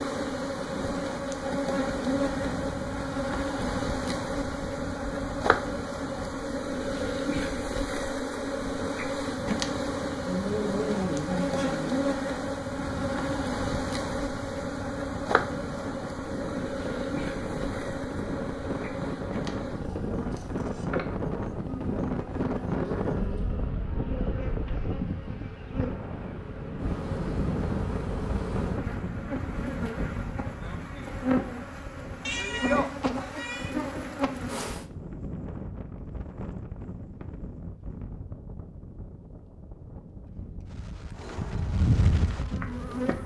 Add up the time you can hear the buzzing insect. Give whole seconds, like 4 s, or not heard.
37 s.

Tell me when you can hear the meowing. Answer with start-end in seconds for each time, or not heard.
10.2-12.1, 32.2-33.8.